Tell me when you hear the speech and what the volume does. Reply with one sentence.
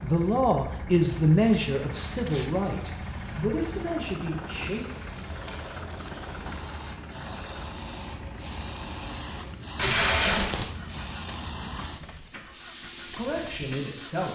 You can hear the speech from 0.0 to 4.8 s, getting quieter; and briefly from 13.1 to 14.3 s.